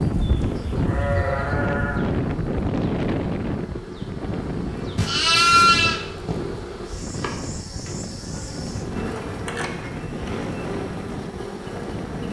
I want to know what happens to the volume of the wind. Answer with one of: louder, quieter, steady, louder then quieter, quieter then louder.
quieter.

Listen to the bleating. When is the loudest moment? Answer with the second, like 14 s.
6 s.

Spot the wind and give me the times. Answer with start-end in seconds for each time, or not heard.
0.0-12.2.